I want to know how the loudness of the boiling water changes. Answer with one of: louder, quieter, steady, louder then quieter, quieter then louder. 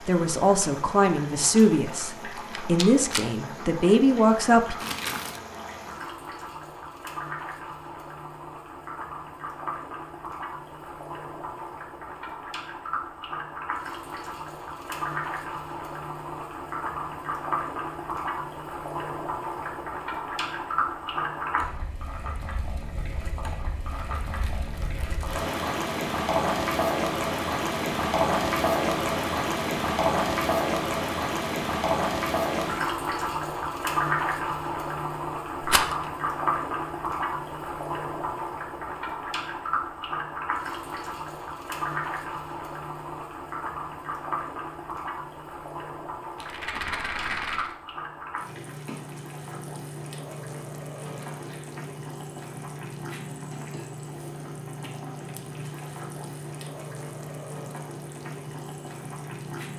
louder then quieter.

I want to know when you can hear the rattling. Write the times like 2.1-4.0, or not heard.
2.4-3.2, 35.6-36.0, 46.4-47.8.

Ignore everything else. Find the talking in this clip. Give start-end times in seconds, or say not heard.
0.1-4.8.